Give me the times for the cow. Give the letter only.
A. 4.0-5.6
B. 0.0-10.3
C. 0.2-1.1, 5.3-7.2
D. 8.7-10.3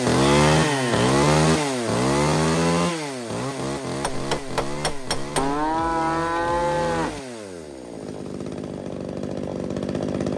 C.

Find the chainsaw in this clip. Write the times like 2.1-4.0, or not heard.
0.0-10.3.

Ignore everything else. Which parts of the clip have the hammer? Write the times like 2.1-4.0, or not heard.
4.0-5.6.